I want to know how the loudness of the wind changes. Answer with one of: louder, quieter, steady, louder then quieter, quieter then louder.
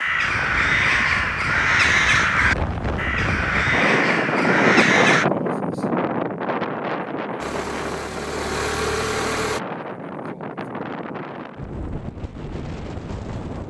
louder then quieter.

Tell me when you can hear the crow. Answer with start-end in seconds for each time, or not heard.
0.0-5.2.